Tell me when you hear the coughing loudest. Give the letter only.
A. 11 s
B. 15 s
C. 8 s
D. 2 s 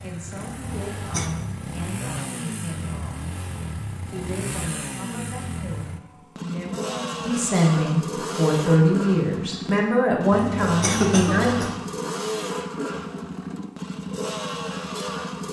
A.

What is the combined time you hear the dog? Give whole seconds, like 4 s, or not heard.
not heard.